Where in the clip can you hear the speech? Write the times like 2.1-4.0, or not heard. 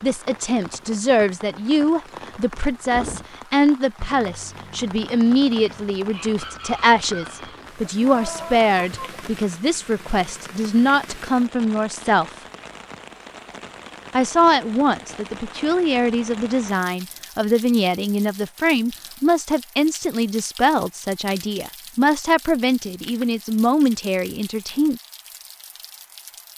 0.0-12.2, 14.1-25.0.